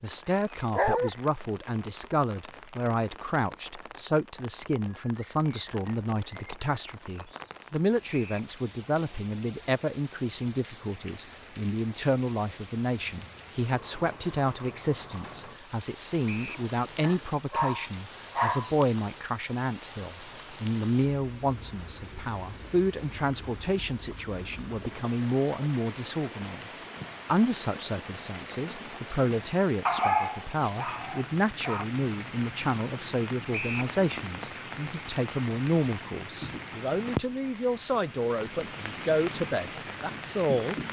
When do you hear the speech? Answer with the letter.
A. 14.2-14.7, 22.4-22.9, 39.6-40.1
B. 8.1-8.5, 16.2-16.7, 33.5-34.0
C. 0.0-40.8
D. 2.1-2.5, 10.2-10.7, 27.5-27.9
C.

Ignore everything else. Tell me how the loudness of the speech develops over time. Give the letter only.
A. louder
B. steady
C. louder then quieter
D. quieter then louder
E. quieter
B.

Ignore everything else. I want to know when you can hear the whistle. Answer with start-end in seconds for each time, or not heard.
8.1-8.5, 16.2-16.7, 33.5-34.0.